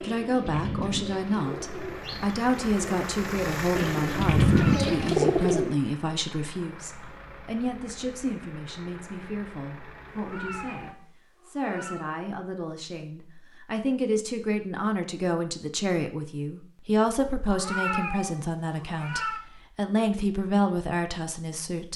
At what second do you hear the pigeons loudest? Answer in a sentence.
The loudest moment of the pigeons is at 5 seconds.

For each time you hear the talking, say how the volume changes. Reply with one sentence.
You can hear the talking from 0.0 to 21.9 s, getting quieter then louder.